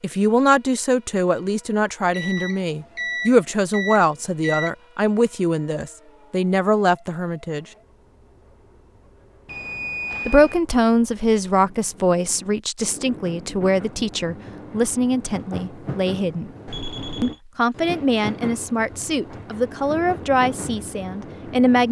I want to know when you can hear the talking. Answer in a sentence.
You can hear the talking from 0.0 to 7.7 s, from 10.2 to 16.5 s and from 17.2 to 21.8 s.